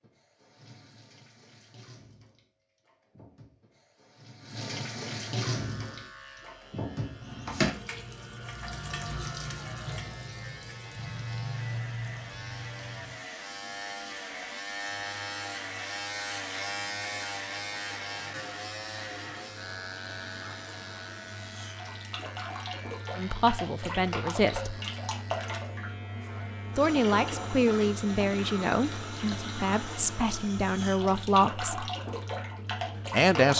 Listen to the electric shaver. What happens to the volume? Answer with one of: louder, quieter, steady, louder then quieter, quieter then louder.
louder then quieter.